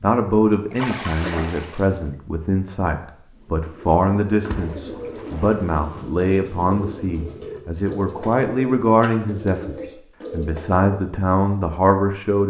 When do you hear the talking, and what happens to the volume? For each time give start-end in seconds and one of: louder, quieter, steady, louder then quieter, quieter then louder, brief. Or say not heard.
0.0-12.4 steady.